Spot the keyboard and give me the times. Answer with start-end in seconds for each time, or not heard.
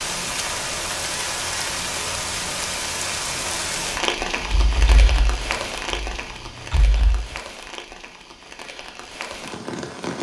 4.4-7.4.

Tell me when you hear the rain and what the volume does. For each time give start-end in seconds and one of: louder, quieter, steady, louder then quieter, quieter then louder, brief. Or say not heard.
0.0-10.1 quieter.